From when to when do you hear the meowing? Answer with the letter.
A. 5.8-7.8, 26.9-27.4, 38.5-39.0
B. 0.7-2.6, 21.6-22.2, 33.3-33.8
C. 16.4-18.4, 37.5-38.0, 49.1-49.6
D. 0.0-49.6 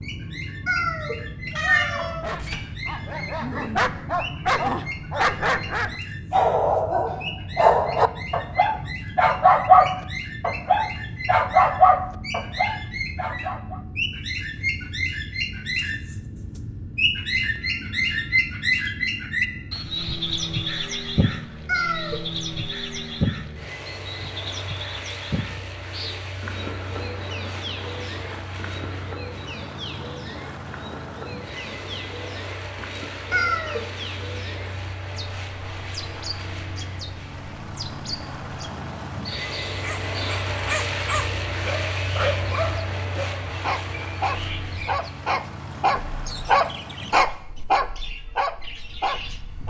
B.